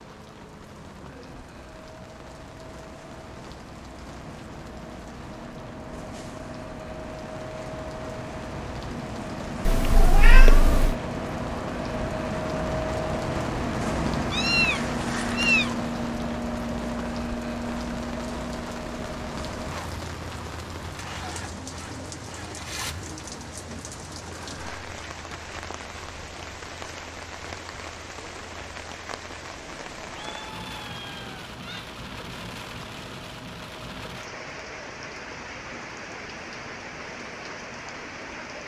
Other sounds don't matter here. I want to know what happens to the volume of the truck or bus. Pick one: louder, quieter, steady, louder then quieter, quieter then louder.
louder then quieter.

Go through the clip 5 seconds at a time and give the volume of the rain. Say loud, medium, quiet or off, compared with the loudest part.
medium, medium, loud, loud, loud, loud, loud, loud.